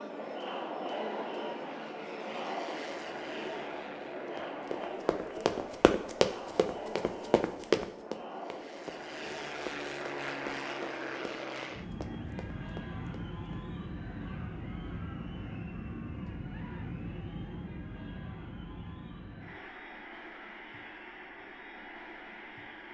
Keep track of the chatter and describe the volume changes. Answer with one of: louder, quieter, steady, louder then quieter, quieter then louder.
quieter.